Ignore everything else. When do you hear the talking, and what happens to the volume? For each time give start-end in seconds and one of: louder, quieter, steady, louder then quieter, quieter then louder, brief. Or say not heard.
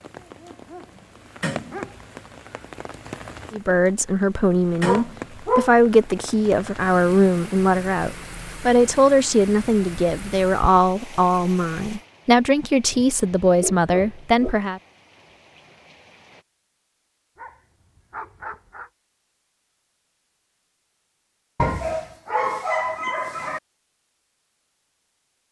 3.5-14.8 steady.